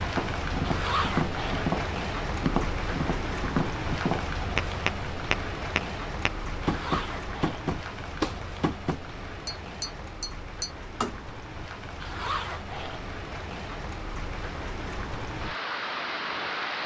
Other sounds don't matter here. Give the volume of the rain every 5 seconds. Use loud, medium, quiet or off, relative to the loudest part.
loud, medium, medium, loud.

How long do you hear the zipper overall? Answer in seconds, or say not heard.
3 s.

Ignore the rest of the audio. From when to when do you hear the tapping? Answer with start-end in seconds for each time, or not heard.
0.1-11.2.